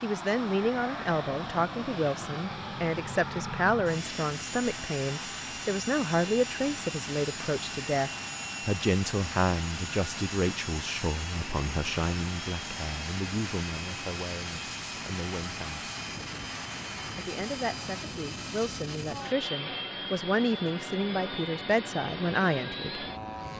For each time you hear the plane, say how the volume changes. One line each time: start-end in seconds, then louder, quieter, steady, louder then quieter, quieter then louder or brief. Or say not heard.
0.0-23.5 steady.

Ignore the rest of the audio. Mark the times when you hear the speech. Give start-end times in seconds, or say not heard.
0.0-15.9, 17.1-23.1.